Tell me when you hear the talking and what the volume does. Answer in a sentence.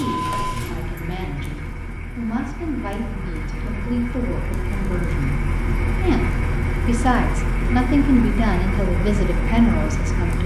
The talking can be heard from 0.0 to 10.4 s, getting louder.